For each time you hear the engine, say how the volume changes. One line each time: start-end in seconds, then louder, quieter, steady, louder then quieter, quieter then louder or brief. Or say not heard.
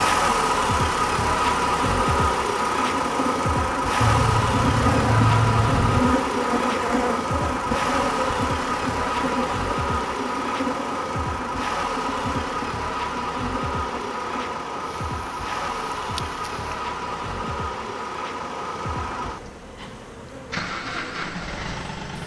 0.0-22.2 quieter.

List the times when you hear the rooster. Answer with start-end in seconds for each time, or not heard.
4.0-6.0.